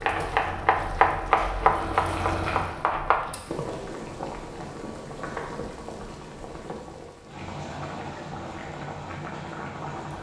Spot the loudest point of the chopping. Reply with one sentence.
The loudest moment of the chopping is at 1 second.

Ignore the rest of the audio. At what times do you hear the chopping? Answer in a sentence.
You can hear the chopping from 0.0 to 3.2 s.